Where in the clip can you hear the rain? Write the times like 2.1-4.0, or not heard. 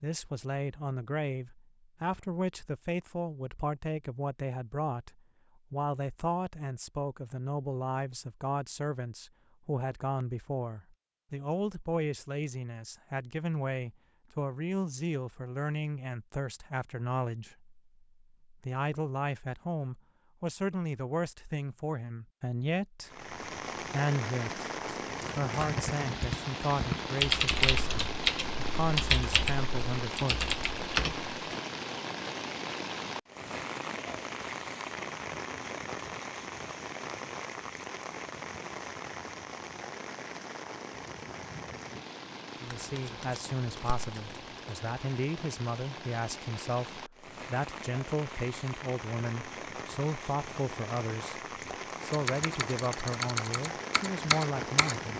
23.0-55.1.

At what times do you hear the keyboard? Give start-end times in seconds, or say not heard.
25.6-31.3, 51.5-55.0.